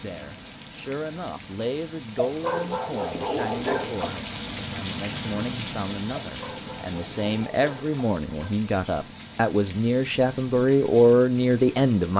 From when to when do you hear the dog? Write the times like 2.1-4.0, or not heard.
2.2-4.2, 6.2-8.6.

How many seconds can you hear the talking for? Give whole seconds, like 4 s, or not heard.
12 s.